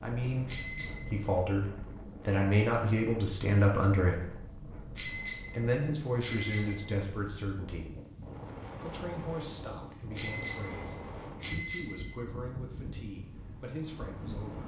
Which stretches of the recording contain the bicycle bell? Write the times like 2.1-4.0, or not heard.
0.5-1.3, 5.0-7.0, 10.2-12.2.